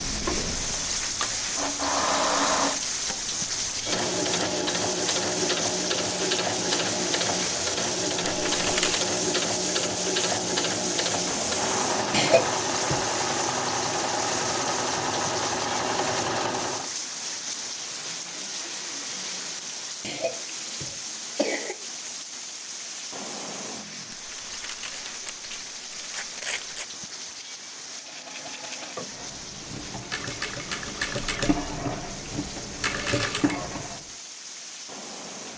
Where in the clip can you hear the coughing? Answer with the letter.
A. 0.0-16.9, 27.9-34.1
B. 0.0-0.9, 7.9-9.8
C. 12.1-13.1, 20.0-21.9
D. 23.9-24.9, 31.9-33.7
C.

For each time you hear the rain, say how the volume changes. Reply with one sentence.
You can hear the rain from 0.0 to 35.5 s, getting quieter.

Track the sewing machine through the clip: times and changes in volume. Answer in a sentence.
The sewing machine can be heard from 0.0 to 16.9 s, at a steady volume; and from 27.9 to 34.1 s, getting louder.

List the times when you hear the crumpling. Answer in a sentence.
You can hear the crumpling from 8.4 to 9.0 s and from 24.1 to 26.9 s.